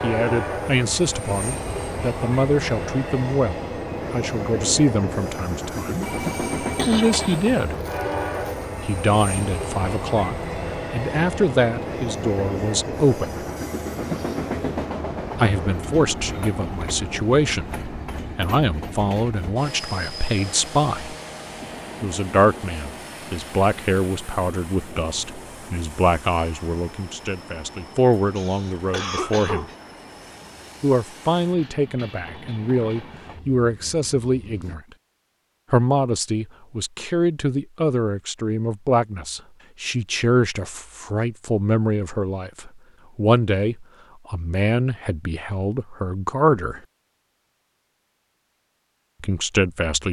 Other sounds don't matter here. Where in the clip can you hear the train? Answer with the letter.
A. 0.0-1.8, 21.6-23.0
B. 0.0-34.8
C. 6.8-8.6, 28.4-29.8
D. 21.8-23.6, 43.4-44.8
B.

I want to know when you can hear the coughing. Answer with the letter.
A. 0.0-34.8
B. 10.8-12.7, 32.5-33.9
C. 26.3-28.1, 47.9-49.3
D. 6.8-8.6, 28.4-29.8
D.